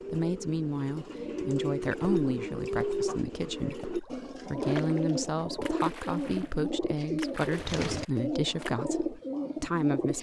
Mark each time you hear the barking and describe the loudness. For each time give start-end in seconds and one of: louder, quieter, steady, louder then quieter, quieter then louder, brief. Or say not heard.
not heard.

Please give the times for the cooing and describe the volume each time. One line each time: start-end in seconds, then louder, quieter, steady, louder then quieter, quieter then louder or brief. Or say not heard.
0.0-10.1 steady.